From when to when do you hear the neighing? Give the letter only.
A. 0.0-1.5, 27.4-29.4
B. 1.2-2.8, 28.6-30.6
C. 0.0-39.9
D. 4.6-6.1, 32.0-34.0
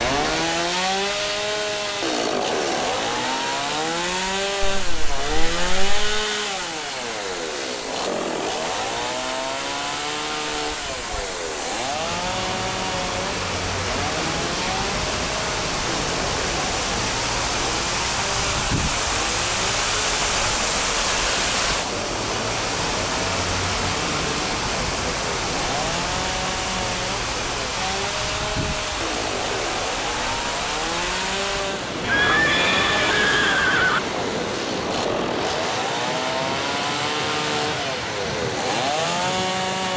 D.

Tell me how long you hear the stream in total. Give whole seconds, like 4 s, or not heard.
40 s.